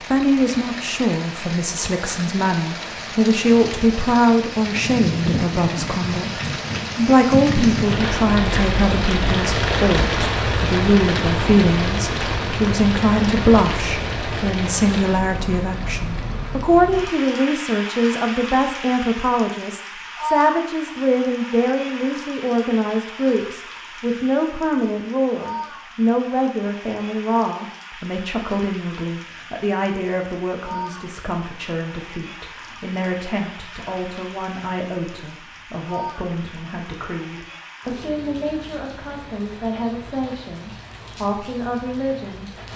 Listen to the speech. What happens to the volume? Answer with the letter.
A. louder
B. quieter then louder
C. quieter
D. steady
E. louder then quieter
C.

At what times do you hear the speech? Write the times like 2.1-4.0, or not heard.
0.1-42.5.